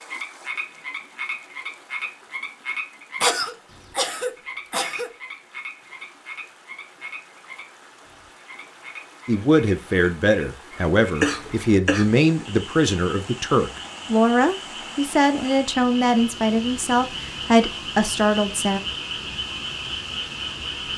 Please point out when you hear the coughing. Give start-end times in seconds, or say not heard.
3.2-5.1, 11.2-12.1.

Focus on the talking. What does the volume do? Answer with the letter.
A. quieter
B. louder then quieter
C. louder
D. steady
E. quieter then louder
D.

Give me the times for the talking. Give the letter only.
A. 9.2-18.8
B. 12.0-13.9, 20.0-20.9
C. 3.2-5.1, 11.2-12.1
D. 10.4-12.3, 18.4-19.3
A.